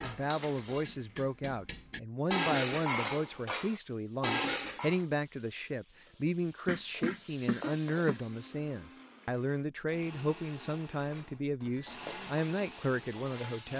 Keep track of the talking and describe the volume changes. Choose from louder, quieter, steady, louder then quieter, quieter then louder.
steady.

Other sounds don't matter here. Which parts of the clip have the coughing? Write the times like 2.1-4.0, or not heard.
6.7-8.2.